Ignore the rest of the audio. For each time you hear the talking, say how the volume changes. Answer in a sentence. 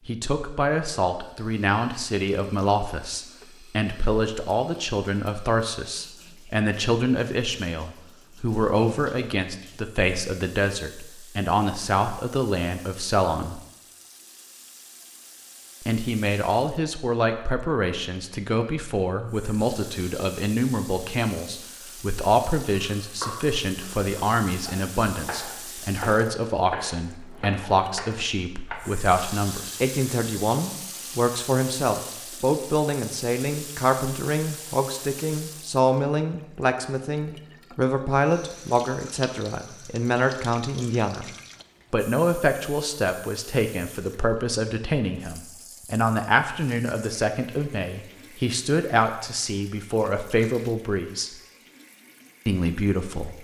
You can hear the talking from 0.1 to 13.6 s, at a steady volume; from 15.8 to 41.3 s, at a steady volume; from 41.9 to 51.3 s, at a steady volume; and briefly from 52.5 to 53.3 s.